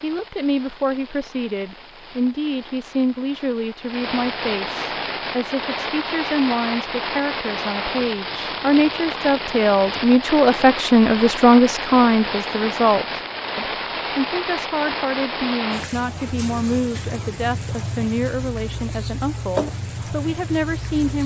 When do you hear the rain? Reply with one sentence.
You can hear the rain from 0.0 to 21.2 s.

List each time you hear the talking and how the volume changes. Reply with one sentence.
You can hear the talking from 0.0 to 21.2 s, getting louder then quieter.